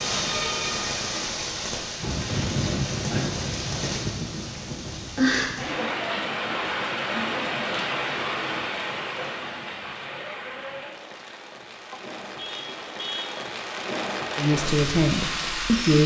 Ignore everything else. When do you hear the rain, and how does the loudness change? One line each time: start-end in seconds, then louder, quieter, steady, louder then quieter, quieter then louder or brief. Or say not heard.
0.0-16.0 quieter then louder.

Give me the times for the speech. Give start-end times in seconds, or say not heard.
14.3-16.0.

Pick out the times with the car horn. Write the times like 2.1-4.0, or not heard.
11.9-13.3.